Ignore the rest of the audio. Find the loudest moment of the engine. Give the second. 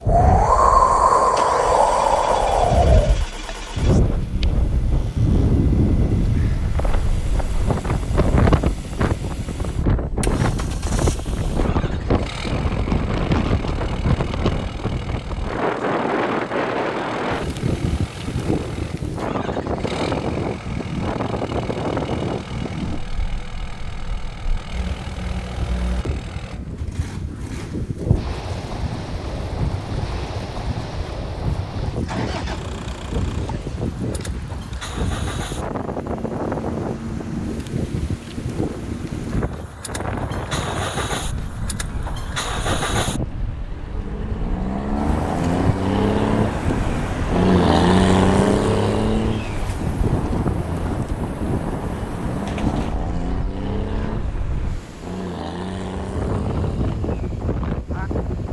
48 s.